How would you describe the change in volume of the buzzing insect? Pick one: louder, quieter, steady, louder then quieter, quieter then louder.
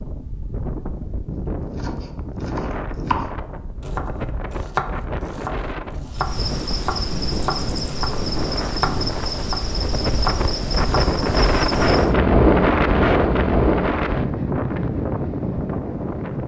steady.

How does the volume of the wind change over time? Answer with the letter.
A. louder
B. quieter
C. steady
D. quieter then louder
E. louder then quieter
A.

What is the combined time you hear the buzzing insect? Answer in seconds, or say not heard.
6 s.